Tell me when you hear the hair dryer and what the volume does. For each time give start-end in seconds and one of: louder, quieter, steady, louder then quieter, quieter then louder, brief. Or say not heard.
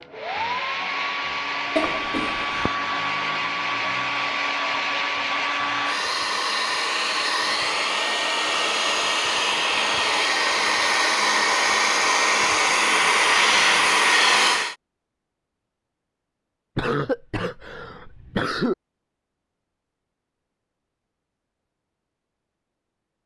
0.0-14.8 louder.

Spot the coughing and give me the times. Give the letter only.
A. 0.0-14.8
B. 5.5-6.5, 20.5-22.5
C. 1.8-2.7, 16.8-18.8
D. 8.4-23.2
C.